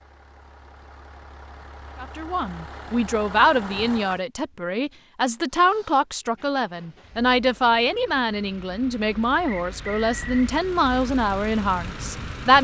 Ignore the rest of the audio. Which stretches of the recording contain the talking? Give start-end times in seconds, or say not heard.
2.0-12.5.